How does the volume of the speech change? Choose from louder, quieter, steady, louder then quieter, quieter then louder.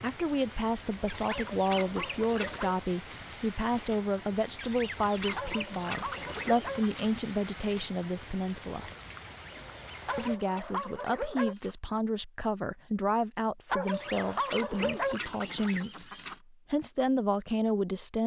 steady.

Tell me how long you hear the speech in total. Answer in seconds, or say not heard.
17 s.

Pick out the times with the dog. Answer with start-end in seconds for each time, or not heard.
1.2-2.8, 5.3-6.8, 10.1-11.6, 13.7-15.2.